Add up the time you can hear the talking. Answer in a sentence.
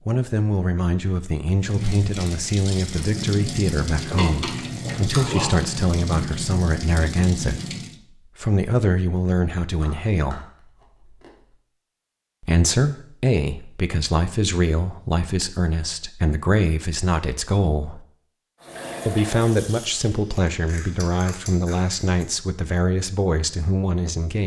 You can hear the talking for 21 seconds altogether.